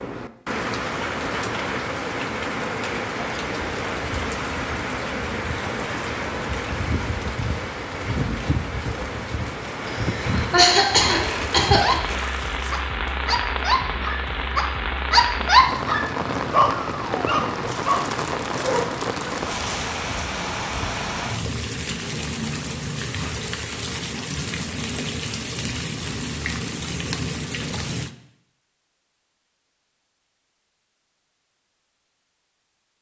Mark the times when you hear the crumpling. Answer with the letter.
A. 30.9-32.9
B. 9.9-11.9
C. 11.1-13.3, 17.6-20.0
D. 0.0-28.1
C.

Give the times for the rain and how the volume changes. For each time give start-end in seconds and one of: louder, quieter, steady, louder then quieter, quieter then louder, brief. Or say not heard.
0.0-28.1 steady.